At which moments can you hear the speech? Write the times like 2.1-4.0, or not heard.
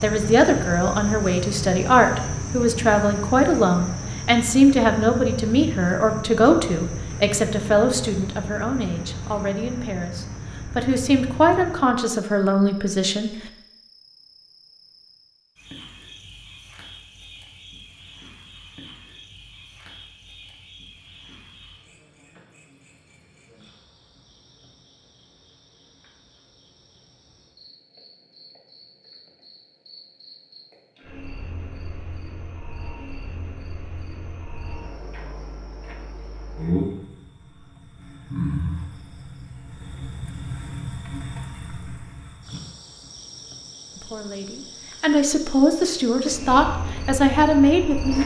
0.0-13.3, 44.0-48.2.